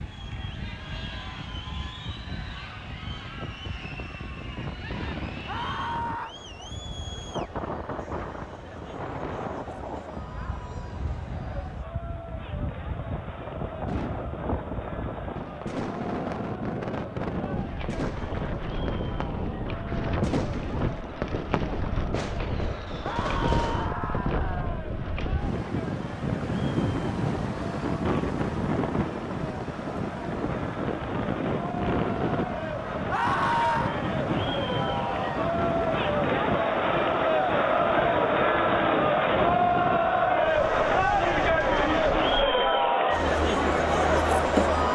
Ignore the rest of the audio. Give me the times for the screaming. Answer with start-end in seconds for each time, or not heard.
5.5-6.3, 23.0-24.9, 33.1-34.0.